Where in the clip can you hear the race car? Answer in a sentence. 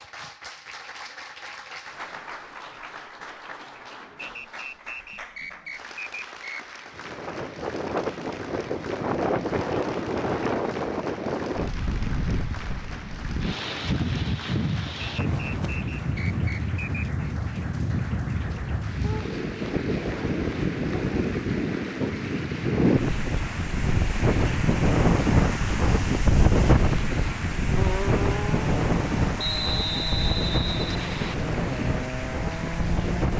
You can hear the race car from 27.8 to 33.3 s.